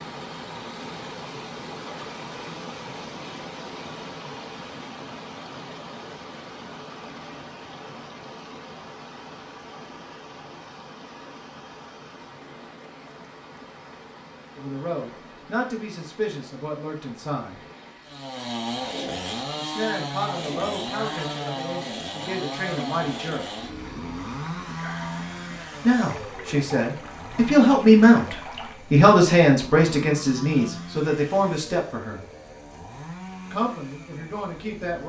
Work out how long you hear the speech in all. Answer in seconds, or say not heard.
15 s.